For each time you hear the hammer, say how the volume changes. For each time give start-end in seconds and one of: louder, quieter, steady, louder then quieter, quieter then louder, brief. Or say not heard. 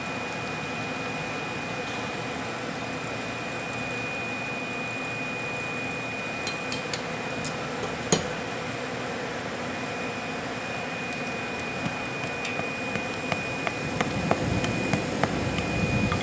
6.5-8.3 brief
11.7-16.1 louder.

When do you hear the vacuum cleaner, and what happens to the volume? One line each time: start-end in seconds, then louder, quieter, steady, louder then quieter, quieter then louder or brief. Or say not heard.
0.0-16.1 steady.